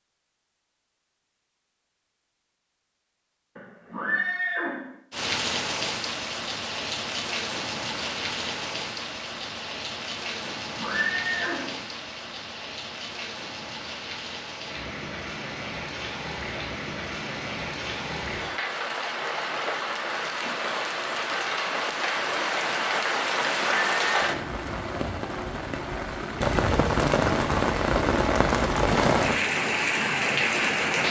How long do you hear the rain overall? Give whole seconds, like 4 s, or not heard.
26 s.